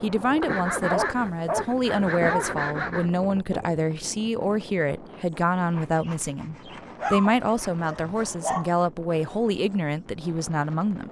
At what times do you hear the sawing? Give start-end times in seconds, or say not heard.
0.4-3.1, 5.7-8.3.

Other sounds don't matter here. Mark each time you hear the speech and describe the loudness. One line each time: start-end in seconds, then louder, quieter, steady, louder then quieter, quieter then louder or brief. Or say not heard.
0.0-11.0 steady.